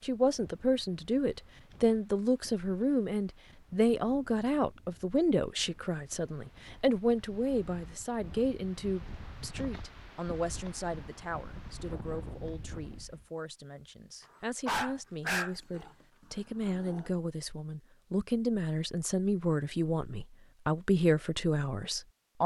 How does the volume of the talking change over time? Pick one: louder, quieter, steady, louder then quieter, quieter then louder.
quieter then louder.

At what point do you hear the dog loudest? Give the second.
15 s.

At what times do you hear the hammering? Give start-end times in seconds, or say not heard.
not heard.